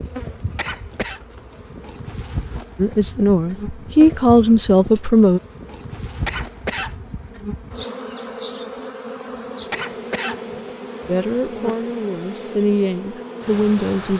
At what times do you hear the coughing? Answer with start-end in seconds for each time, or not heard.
0.6-1.2, 6.2-7.0, 9.7-11.6.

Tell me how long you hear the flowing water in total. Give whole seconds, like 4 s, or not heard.
not heard.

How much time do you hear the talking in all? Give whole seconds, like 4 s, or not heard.
6 s.